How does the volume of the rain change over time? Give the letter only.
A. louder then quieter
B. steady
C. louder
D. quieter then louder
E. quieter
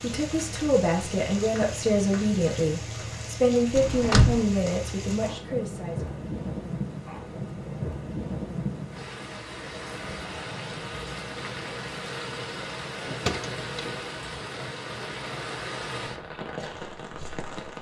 B.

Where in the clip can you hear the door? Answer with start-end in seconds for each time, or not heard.
3.8-4.4, 13.1-14.0.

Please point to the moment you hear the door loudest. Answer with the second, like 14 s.
4 s.